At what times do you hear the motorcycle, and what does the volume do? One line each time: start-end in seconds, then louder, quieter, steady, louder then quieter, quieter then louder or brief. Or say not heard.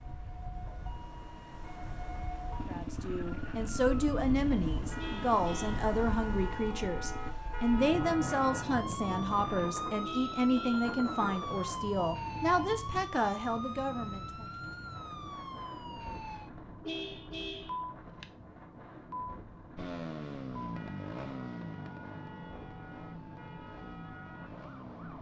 2.5-7.3 quieter
19.8-25.1 quieter.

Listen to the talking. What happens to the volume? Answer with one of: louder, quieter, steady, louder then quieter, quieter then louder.
steady.